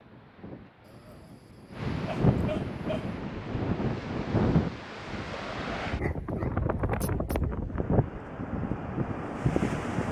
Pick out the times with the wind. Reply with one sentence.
You can hear the wind from 0.0 to 10.0 s.